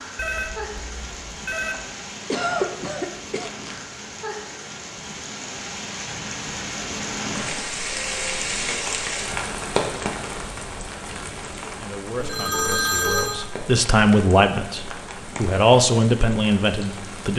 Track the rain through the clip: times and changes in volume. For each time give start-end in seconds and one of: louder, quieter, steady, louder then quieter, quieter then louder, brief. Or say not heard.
0.0-17.3 louder then quieter.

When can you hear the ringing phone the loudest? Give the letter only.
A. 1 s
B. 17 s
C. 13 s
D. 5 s
C.